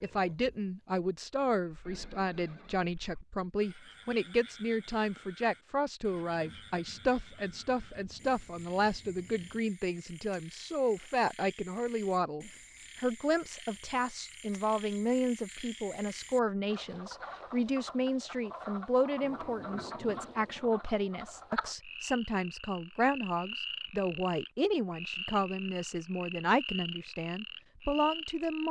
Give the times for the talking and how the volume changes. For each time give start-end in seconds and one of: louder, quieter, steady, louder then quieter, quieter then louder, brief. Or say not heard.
0.0-28.6 steady.